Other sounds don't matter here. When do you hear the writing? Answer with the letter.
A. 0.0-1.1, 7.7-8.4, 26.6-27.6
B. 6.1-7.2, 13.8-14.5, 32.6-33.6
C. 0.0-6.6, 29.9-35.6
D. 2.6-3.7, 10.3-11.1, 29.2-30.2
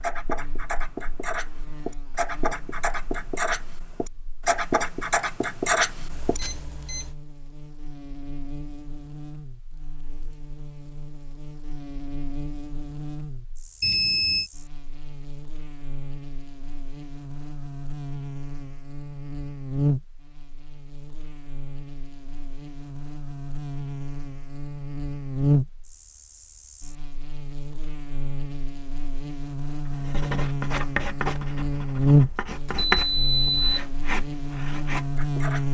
C.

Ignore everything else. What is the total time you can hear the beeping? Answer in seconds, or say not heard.
3 s.